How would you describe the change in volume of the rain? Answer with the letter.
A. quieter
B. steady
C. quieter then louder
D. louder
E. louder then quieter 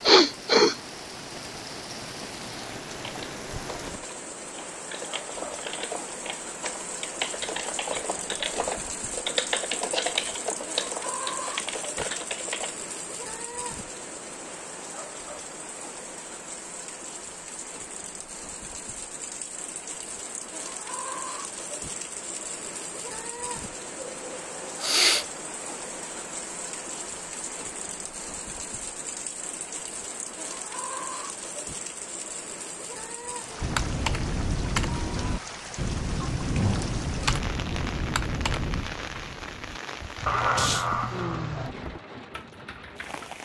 B.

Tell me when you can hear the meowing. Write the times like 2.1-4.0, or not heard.
40.2-41.8.